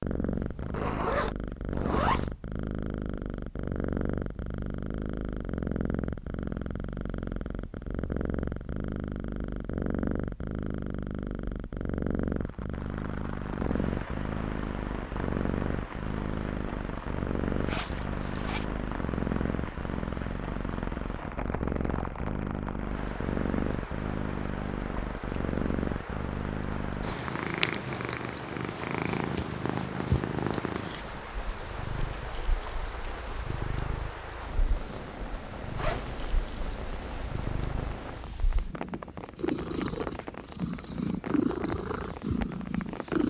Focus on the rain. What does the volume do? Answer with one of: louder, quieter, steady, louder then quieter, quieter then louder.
steady.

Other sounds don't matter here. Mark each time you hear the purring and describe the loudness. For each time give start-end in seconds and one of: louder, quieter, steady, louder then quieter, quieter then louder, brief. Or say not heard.
0.0-43.2 steady.